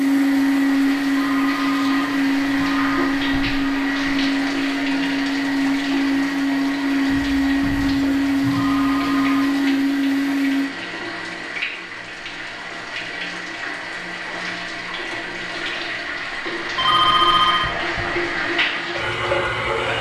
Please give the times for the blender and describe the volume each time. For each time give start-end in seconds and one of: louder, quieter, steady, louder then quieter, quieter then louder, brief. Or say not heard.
0.0-10.7 steady.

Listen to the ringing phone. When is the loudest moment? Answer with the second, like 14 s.
17 s.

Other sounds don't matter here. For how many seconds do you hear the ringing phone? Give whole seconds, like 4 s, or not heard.
4 s.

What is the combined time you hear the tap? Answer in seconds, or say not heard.
20 s.